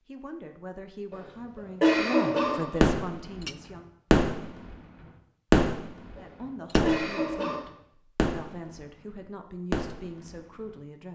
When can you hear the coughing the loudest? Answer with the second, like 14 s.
2 s.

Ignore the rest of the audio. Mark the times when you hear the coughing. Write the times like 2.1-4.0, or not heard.
1.1-2.9, 6.2-7.6.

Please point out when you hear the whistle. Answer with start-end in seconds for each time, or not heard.
not heard.